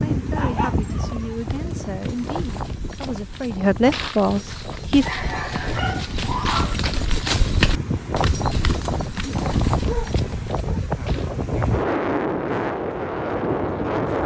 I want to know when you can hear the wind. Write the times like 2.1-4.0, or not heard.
0.0-14.2.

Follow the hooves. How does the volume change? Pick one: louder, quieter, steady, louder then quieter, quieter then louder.
louder then quieter.